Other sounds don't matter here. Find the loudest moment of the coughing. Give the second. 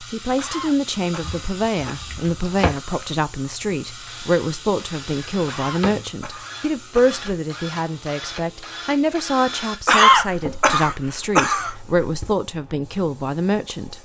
10 s.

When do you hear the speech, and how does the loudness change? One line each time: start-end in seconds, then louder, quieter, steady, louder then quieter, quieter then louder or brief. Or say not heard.
0.0-13.9 steady.